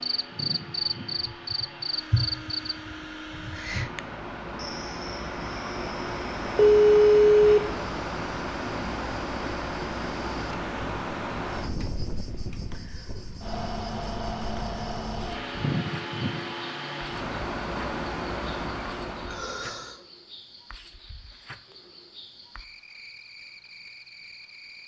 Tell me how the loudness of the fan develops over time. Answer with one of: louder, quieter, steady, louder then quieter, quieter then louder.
louder.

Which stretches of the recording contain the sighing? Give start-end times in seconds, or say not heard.
19.2-20.0.